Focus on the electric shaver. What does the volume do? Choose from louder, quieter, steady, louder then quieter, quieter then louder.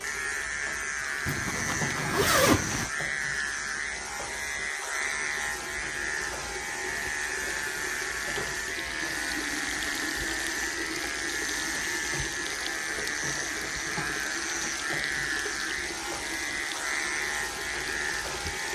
steady.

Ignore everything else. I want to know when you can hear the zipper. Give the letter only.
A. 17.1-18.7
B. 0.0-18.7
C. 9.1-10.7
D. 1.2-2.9
D.